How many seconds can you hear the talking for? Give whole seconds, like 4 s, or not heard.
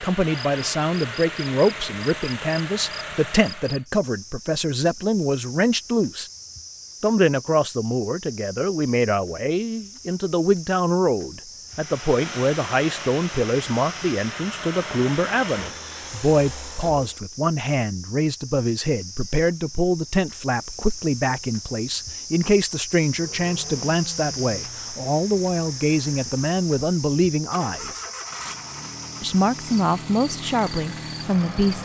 30 s.